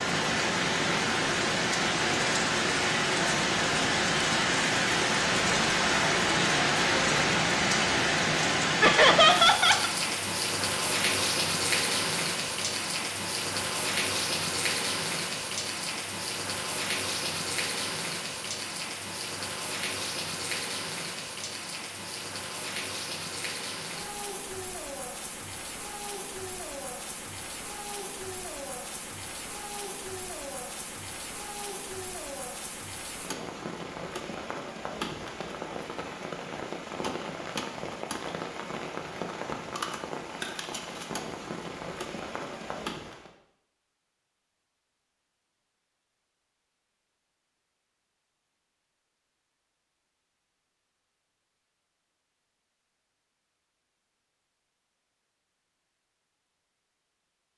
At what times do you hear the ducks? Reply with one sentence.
The ducks can't be heard in this clip.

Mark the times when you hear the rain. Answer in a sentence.
The rain can be heard from 0.0 to 43.3 s.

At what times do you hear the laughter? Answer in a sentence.
The laughter can be heard from 8.8 to 9.9 s.